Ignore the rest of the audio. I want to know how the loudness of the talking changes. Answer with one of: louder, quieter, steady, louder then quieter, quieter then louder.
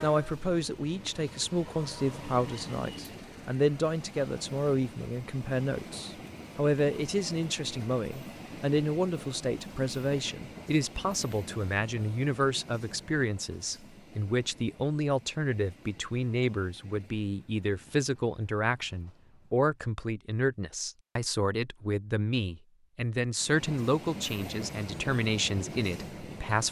steady.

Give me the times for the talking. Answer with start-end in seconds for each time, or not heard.
0.0-26.6.